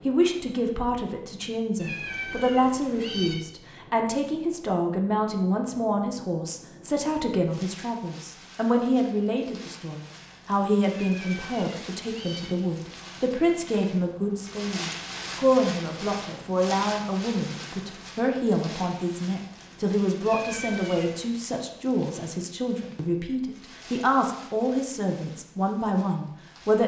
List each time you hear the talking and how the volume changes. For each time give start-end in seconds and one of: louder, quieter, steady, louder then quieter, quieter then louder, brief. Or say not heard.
0.1-26.8 steady.